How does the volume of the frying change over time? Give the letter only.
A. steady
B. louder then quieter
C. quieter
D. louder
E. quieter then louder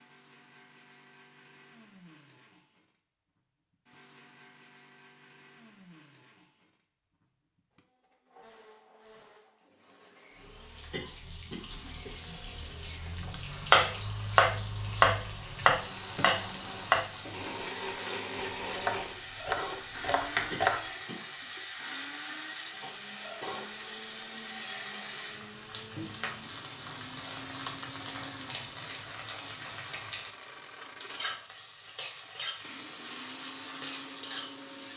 A.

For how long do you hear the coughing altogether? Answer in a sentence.
You can hear the coughing for 2 seconds altogether.